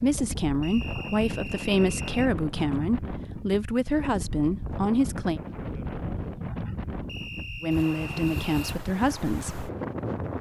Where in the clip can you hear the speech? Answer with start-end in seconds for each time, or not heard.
0.0-5.4, 7.6-9.7.